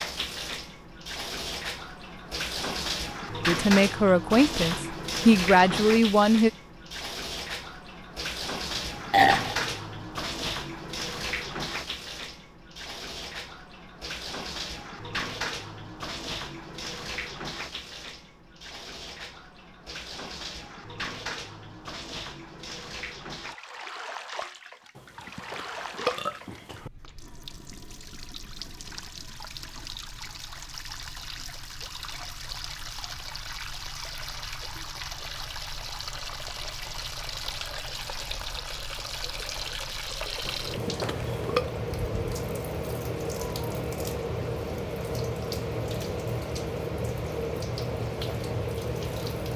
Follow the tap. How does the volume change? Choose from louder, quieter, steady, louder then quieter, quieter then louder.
quieter then louder.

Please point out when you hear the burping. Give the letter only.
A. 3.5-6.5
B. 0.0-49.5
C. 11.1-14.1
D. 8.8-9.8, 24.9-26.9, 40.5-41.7
D.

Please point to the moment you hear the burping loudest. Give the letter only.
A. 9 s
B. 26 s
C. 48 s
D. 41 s
A.